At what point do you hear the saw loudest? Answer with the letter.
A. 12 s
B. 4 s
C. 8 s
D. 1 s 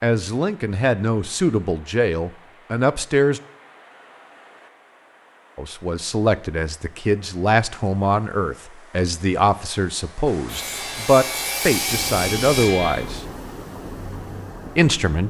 A.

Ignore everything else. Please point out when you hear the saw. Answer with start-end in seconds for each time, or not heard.
10.4-13.1.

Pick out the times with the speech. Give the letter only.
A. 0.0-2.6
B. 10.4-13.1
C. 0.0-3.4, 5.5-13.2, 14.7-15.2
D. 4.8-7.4
C.